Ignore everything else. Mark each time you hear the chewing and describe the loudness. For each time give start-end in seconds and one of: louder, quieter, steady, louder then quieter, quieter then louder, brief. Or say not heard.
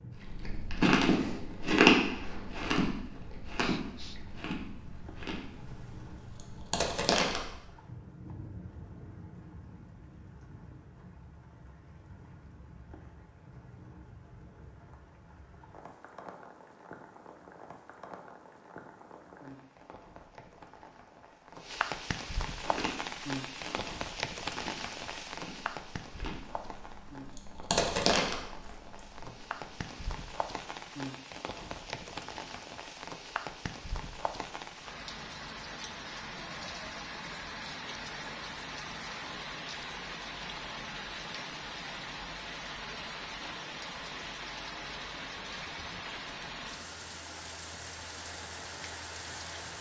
0.2-7.5 quieter then louder
22.6-29.9 louder then quieter.